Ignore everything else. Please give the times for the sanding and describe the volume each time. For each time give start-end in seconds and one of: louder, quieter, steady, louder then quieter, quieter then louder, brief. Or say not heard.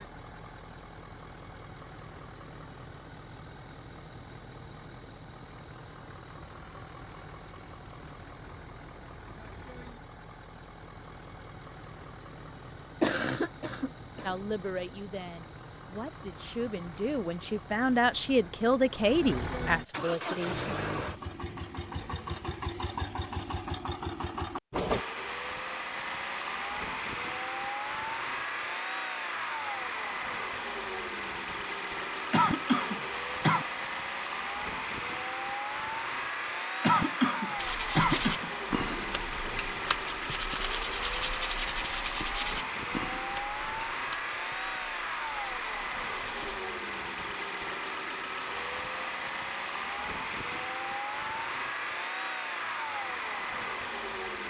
37.5-46.6 quieter.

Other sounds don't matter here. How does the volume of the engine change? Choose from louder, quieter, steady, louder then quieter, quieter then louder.
louder.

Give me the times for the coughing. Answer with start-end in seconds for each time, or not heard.
12.7-14.3, 32.3-33.6, 36.8-38.5.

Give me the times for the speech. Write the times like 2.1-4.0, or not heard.
14.2-20.8.